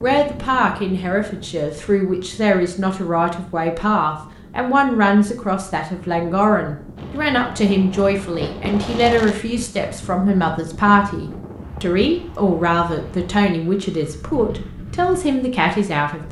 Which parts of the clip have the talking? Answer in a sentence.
You can hear the talking from 0.0 to 16.2 s.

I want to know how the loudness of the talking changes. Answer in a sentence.
The loudness of the talking stays about the same.